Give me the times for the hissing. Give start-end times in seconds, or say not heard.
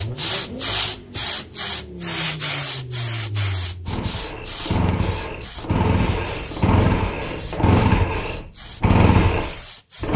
0.0-10.1.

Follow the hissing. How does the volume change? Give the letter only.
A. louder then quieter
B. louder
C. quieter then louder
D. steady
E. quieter
E.